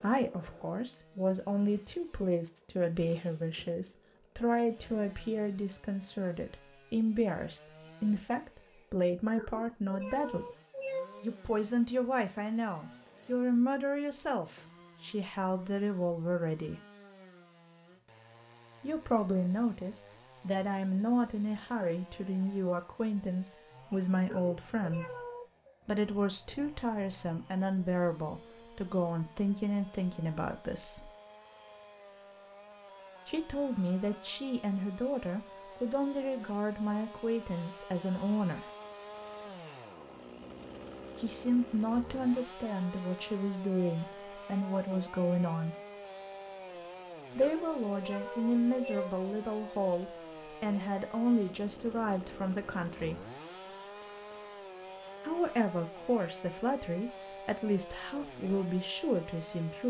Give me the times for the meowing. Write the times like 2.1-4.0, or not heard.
9.3-11.3, 24.2-25.8, 47.4-49.1.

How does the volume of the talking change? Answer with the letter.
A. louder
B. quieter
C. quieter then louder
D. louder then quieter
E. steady
E.